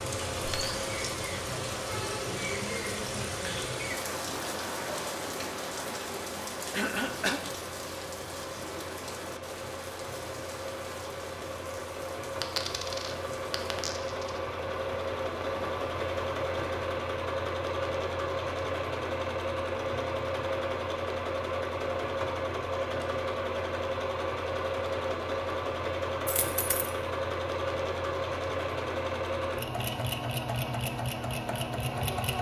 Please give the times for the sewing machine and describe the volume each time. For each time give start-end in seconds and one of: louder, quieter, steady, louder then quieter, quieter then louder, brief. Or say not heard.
0.0-32.3 louder.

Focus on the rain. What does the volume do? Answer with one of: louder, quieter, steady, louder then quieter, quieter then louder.
quieter.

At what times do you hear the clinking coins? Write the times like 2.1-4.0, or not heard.
0.4-0.8, 12.4-14.4, 26.2-26.9.